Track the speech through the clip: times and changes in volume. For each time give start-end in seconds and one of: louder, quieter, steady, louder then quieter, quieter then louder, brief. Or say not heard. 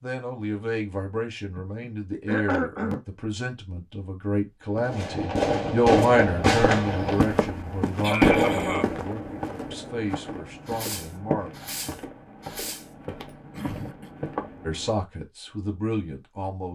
0.0-11.5 louder then quieter
14.7-16.7 brief.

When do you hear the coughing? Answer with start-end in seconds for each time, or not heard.
1.6-3.0, 8.0-9.2, 13.5-14.2.